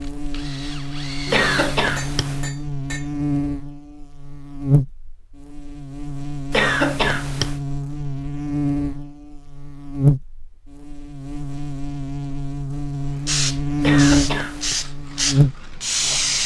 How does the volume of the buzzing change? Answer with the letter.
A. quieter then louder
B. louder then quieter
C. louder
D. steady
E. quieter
C.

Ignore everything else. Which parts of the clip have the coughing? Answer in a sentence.
You can hear the coughing from 1.3 to 2.5 s, from 6.5 to 7.6 s and from 13.8 to 14.8 s.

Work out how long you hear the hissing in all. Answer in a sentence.
You can hear the hissing for 3 seconds altogether.